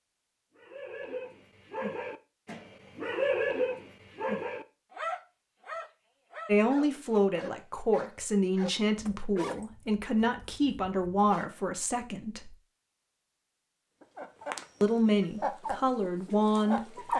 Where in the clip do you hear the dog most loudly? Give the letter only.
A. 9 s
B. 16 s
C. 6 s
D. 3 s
D.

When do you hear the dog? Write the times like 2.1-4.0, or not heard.
0.6-11.5.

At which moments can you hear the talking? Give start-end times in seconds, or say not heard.
6.5-12.6, 14.8-16.9.